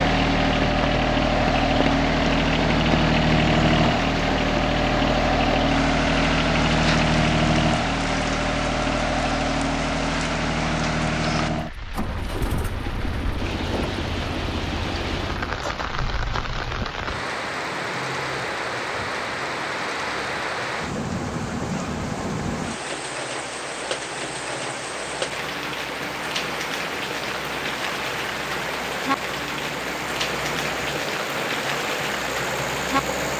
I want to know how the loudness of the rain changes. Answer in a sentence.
The loudness of the rain stays about the same.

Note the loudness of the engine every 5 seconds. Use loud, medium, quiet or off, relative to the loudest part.
loud, loud, medium, quiet, quiet, quiet, medium.